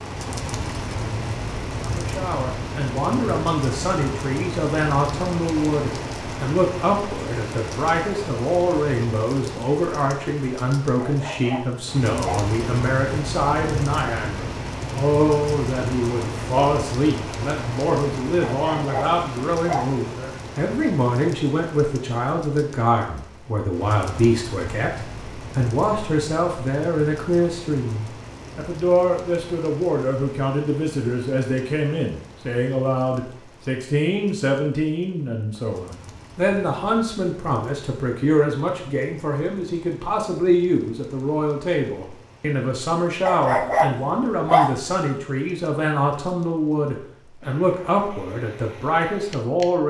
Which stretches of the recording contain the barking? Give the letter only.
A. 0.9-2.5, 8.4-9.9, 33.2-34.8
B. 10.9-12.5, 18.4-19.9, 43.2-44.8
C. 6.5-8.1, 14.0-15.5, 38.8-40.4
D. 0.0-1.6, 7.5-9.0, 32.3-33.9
B.